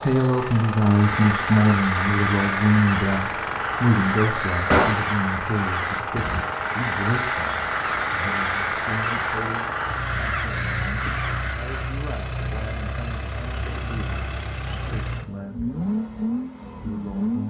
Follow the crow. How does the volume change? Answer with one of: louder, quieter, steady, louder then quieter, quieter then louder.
steady.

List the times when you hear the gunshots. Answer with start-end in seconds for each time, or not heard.
4.7-5.2.